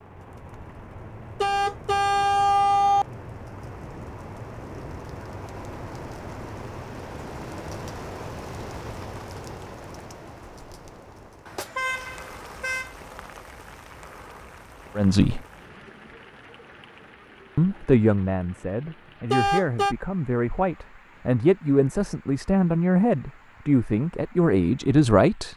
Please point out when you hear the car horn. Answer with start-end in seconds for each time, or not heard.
1.4-3.0, 11.4-12.9, 19.3-19.9.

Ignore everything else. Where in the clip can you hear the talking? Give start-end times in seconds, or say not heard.
14.9-15.4, 17.6-25.5.